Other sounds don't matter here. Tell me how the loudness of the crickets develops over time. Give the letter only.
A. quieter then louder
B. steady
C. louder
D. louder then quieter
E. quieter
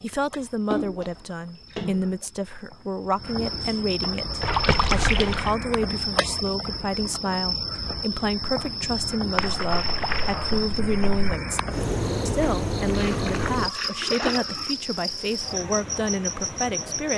C.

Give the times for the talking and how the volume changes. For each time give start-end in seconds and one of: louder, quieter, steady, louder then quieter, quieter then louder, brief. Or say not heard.
0.0-17.1 steady.